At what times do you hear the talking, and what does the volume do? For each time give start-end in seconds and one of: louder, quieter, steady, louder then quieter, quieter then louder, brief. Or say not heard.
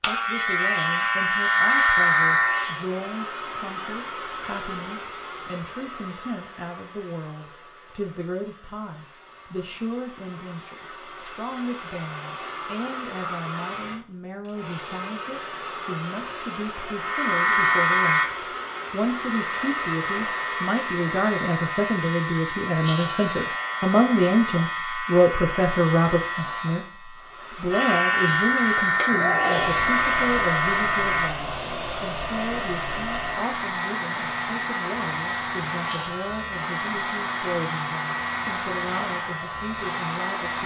0.0-40.6 louder then quieter.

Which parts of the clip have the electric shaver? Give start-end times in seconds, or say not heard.
0.0-2.9, 16.9-40.6.